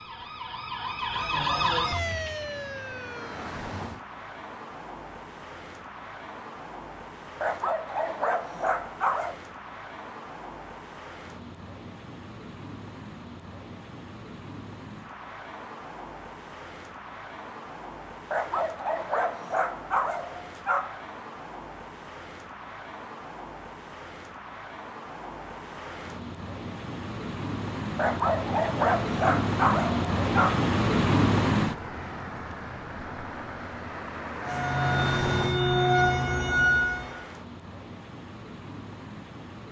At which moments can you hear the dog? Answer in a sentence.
The dog can be heard from 7.4 to 9.3 s, from 18.3 to 21.1 s and from 27.9 to 30.7 s.